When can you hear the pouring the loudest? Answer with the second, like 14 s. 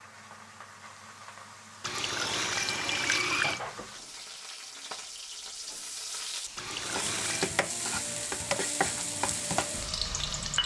3 s.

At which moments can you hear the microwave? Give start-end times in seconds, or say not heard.
not heard.